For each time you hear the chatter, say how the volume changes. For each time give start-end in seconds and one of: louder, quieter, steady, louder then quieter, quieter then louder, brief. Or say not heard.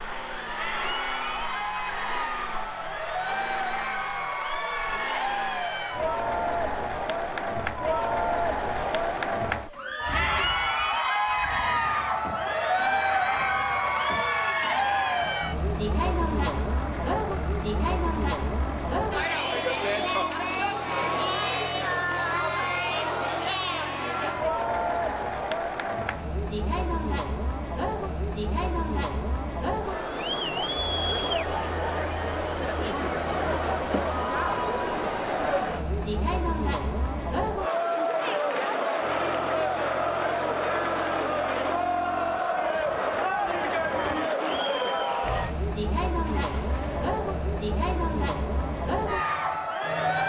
0.1-50.2 steady.